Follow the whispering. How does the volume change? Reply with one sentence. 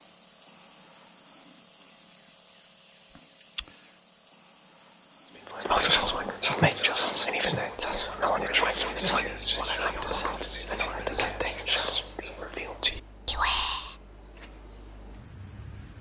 The loudness of the whispering goes down.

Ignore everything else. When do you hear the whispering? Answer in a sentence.
The whispering can be heard from 5.5 to 13.8 s.